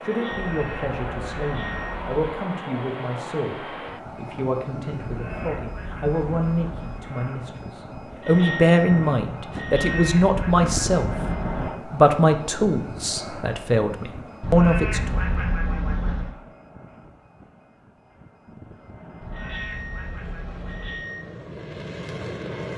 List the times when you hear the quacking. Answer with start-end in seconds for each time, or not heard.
0.3-2.2, 5.0-7.0, 9.7-11.7, 14.4-16.4, 19.2-21.1.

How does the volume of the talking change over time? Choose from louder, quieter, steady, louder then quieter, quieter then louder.
louder.